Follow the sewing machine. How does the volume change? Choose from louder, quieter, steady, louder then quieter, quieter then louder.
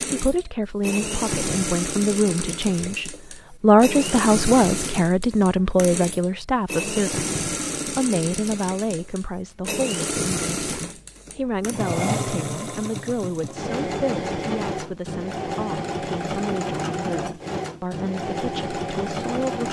steady.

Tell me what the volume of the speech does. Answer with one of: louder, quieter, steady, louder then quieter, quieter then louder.
quieter.